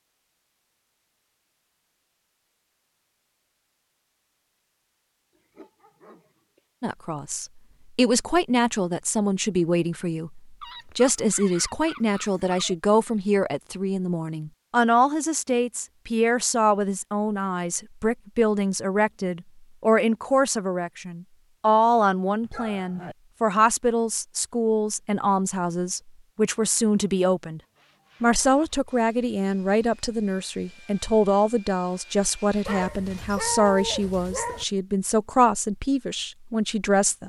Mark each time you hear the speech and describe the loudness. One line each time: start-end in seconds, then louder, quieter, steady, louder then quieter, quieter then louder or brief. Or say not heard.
6.8-27.6 steady
28.2-37.2 steady.